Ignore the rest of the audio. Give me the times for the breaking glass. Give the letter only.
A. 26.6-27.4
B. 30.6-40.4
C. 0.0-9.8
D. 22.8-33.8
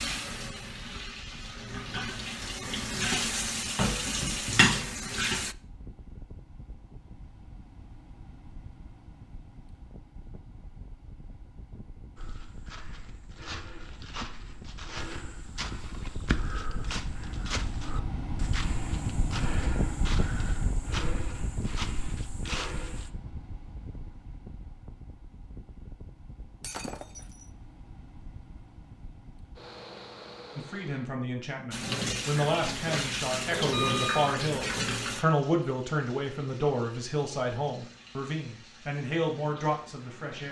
A.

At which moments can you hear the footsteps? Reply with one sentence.
The footsteps can be heard from 12.2 to 23.1 s.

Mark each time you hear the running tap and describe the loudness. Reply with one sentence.
You can hear the running tap from 0.0 to 5.5 s, getting louder; and from 31.7 to 40.4 s, getting quieter.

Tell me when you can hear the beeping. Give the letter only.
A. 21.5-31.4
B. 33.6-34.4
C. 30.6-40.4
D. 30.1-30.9
B.